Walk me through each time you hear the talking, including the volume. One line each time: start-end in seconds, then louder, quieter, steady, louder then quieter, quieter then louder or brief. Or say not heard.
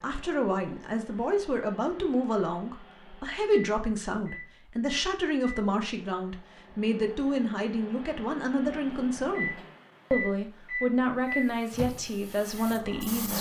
0.0-13.3 steady.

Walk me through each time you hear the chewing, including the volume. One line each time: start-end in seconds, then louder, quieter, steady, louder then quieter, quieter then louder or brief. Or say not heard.
not heard.